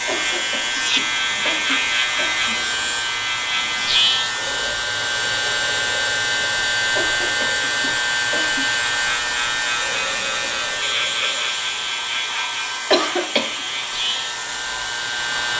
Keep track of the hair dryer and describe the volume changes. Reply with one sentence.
The loudness of the hair dryer stays about the same.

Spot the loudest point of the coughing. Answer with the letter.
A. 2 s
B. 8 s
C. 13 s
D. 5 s
C.